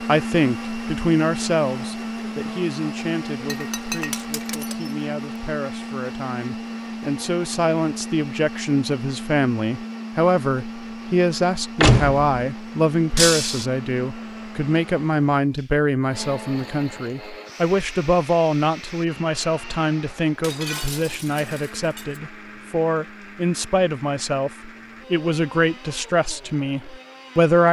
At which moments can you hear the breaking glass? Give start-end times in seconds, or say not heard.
3.5-5.0, 13.2-13.7, 20.4-22.2.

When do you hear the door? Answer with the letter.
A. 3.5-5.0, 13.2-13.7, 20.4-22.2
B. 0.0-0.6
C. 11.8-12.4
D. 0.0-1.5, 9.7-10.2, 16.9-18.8
C.